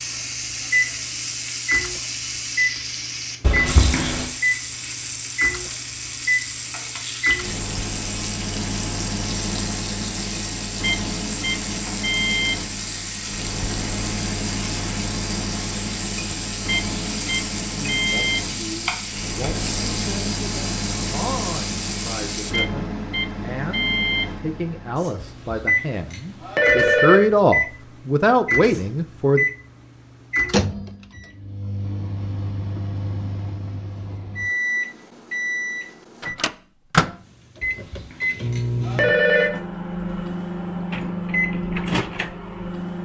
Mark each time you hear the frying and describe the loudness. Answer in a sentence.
You can hear the frying from 0.0 to 22.6 s, at a steady volume.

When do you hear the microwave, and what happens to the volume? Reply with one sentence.
The microwave can be heard from 0.0 to 43.0 s, at a steady volume.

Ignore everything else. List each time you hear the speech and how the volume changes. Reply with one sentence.
You can hear the speech from 17.7 to 29.4 s, getting louder.